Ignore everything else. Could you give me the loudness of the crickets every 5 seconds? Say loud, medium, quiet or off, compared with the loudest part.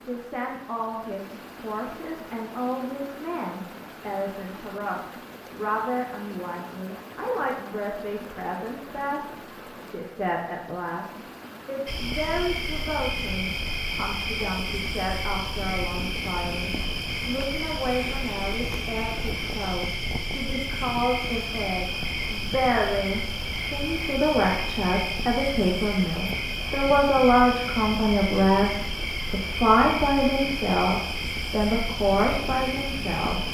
off, off, loud, loud, loud, loud, loud.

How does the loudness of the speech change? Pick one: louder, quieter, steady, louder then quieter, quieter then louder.
louder.